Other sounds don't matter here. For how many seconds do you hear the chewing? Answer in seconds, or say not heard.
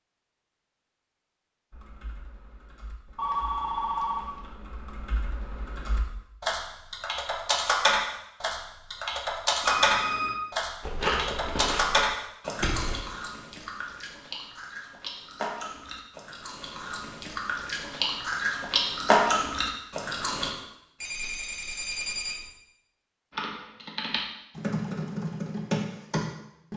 10 s.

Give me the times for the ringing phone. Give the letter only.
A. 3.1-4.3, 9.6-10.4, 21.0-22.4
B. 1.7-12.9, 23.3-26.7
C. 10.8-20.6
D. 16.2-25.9
A.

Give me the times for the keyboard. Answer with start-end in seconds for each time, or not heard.
1.7-12.9, 23.3-26.7.